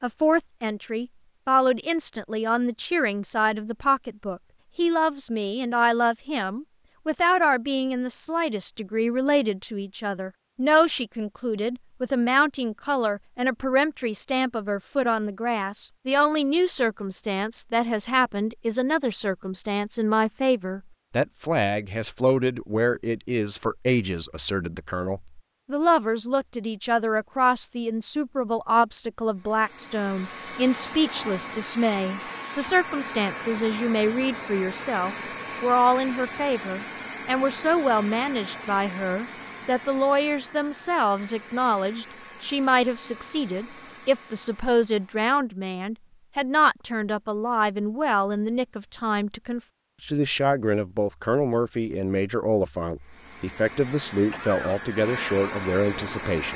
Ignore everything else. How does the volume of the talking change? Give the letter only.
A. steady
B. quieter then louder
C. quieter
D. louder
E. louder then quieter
A.